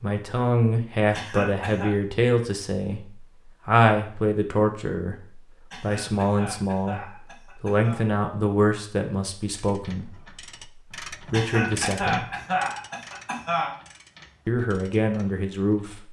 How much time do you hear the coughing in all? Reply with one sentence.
The coughing can be heard for 6 seconds in total.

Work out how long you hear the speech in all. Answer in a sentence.
The speech can be heard for 13 seconds in total.